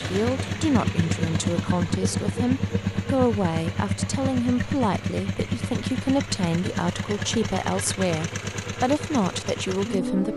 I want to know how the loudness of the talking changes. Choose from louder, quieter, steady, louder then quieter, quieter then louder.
steady.